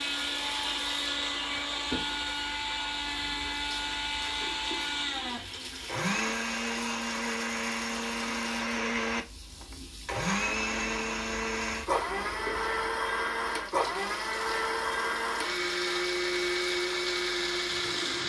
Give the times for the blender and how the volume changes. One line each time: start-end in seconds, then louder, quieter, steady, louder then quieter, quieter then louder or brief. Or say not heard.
0.0-18.2 steady.